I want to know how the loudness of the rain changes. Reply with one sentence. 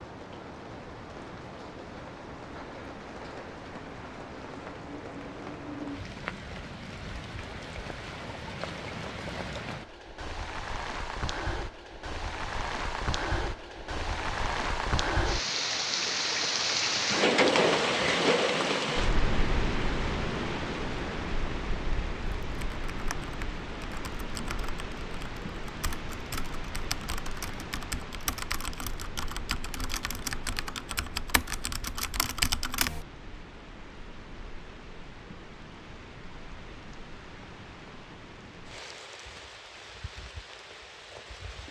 The loudness of the rain goes up, then down.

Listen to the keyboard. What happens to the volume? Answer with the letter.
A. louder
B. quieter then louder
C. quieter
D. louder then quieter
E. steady
A.